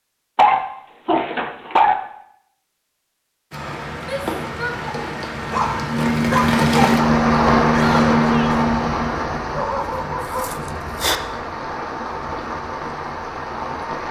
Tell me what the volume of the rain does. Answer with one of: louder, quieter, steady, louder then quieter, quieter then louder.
louder then quieter.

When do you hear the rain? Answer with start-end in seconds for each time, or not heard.
3.5-14.0.